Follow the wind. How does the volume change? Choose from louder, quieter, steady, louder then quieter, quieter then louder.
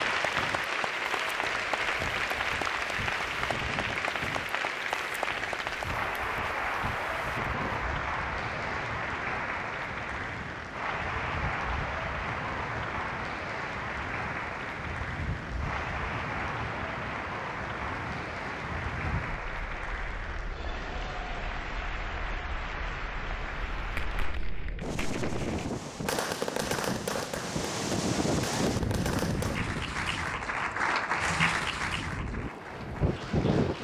louder.